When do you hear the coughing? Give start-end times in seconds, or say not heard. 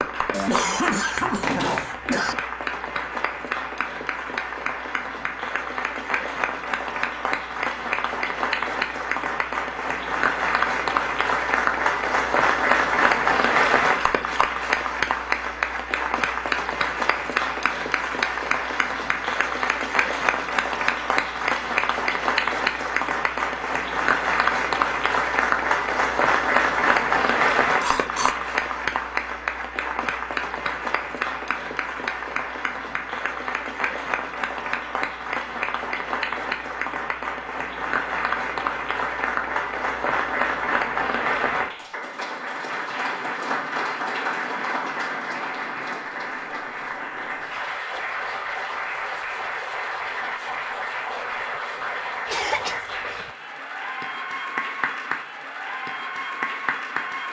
0.3-2.4, 27.8-28.5, 52.2-53.2.